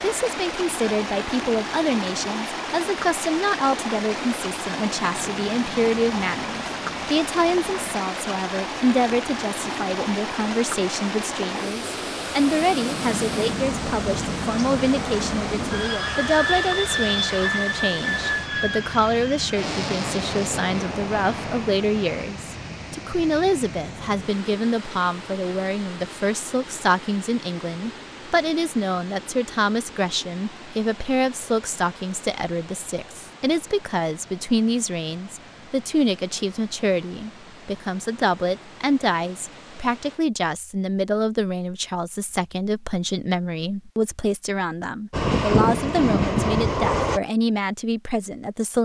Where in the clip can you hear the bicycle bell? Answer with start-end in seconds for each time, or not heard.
not heard.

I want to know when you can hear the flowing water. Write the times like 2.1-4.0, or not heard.
0.0-40.2.